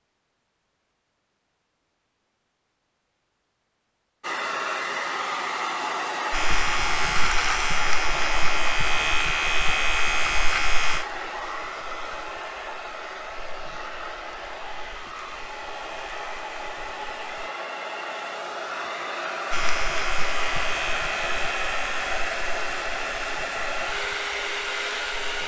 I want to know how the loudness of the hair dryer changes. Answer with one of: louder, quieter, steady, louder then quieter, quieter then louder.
quieter then louder.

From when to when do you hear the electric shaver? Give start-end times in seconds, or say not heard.
6.3-17.4, 19.5-25.4.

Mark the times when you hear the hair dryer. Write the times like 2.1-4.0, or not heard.
4.2-25.4.